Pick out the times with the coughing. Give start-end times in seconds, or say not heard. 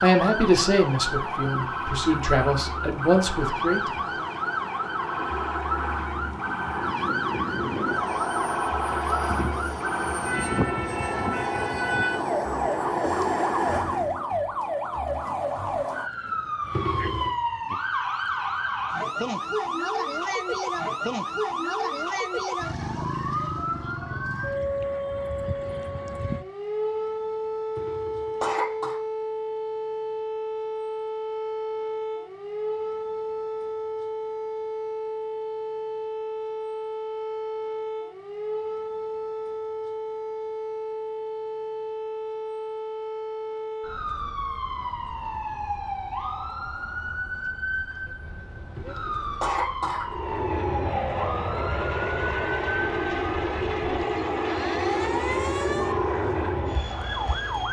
16.7-17.4, 27.8-29.0, 48.8-50.1.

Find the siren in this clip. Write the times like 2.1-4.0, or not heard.
0.0-57.6.